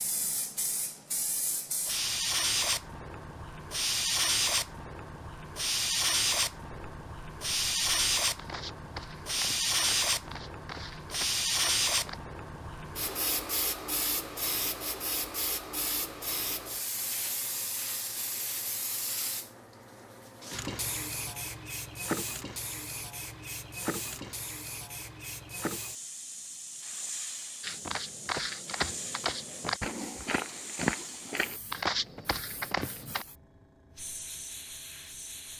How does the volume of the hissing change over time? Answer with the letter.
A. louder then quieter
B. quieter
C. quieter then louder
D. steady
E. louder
B.